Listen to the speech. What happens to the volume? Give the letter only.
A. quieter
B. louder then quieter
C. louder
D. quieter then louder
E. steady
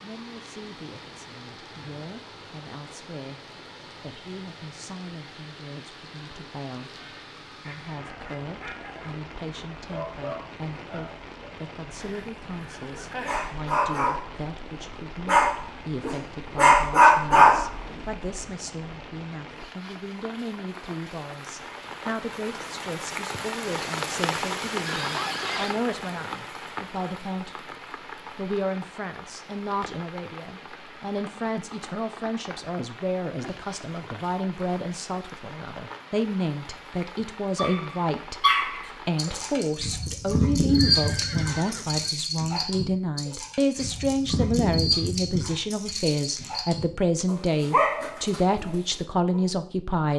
C.